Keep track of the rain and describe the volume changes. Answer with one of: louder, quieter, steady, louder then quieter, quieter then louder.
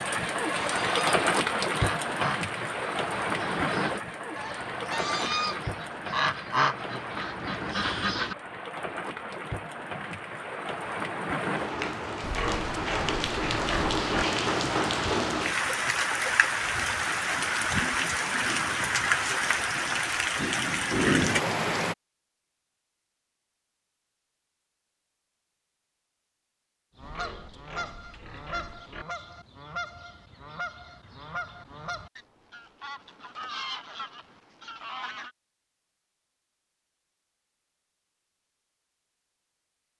quieter then louder.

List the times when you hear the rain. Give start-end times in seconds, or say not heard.
0.0-21.9.